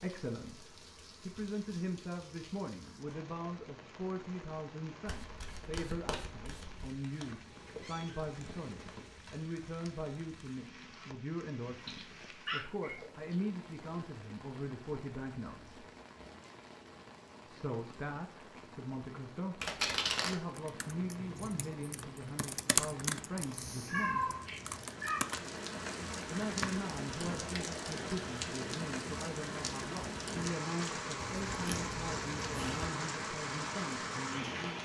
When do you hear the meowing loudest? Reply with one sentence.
The volume of the meowing peaks at 24 seconds.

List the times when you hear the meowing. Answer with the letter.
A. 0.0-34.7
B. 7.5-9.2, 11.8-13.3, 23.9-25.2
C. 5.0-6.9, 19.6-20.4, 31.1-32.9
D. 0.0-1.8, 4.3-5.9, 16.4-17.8
B.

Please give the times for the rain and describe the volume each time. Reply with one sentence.
The rain can be heard from 0.0 to 34.7 s, getting louder.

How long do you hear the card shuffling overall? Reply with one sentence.
You can hear the card shuffling for 4 seconds altogether.